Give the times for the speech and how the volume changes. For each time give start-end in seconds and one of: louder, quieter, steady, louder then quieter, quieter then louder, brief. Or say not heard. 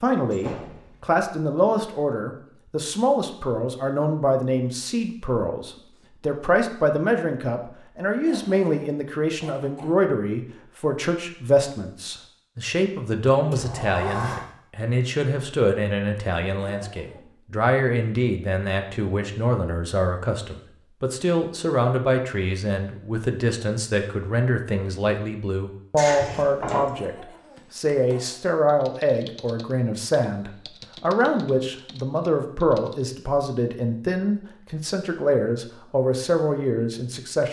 0.0-37.4 steady.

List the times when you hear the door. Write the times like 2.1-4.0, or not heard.
0.3-1.2, 13.5-14.4, 25.9-26.9.